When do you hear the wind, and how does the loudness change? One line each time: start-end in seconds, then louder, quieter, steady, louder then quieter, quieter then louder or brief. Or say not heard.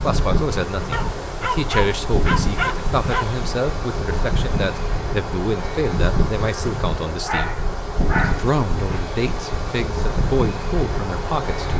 0.0-11.7 steady.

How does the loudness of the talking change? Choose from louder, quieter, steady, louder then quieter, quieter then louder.
steady.